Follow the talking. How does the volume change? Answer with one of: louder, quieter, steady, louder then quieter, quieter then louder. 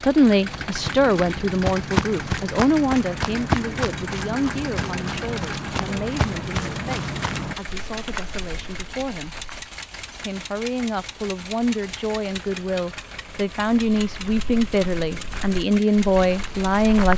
quieter then louder.